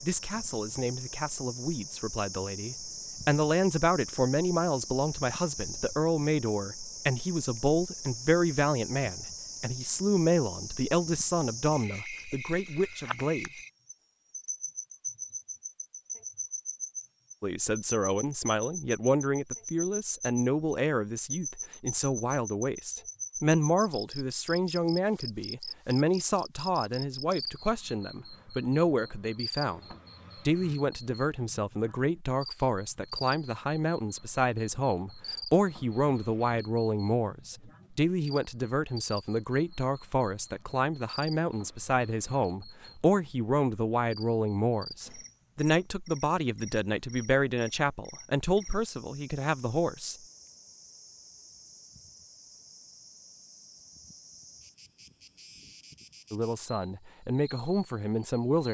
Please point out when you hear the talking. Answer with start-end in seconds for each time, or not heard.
0.0-13.5, 17.4-50.1, 56.3-58.6.